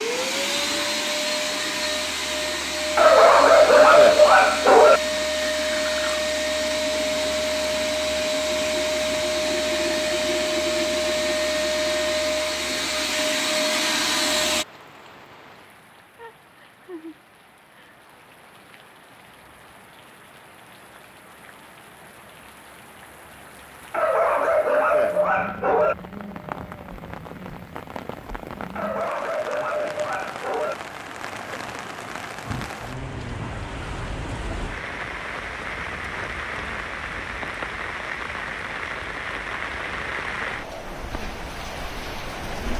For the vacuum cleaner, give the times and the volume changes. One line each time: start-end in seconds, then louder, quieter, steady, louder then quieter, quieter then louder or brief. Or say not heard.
0.0-14.7 steady.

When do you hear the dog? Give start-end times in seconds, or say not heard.
3.0-5.0, 23.9-25.9, 28.8-30.8.